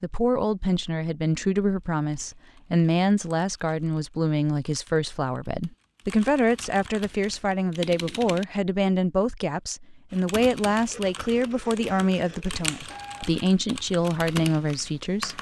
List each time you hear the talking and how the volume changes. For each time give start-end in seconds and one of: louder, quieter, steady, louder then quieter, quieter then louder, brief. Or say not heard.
0.0-15.3 steady.